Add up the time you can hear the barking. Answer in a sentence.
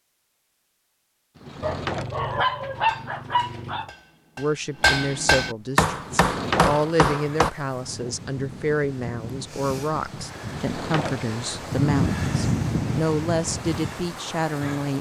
You can hear the barking for 2 seconds altogether.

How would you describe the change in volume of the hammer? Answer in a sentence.
The volume of the hammer goes up.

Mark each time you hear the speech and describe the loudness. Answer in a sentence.
You can hear the speech from 4.3 to 14.9 s, at a steady volume.